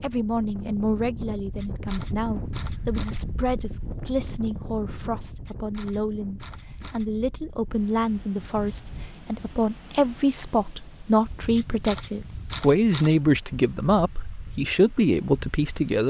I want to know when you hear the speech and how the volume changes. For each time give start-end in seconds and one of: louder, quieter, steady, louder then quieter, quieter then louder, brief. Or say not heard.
0.0-16.0 louder.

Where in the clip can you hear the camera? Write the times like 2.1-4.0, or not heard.
1.6-3.2, 5.5-7.0, 11.6-13.2.